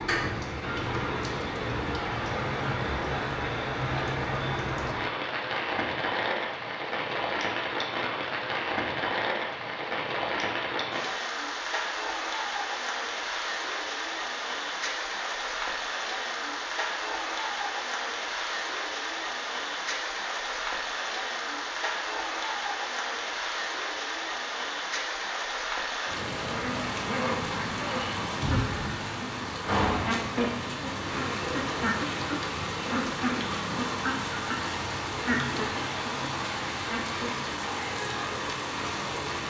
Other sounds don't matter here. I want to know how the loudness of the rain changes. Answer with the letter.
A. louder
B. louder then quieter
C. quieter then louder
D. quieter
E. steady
E.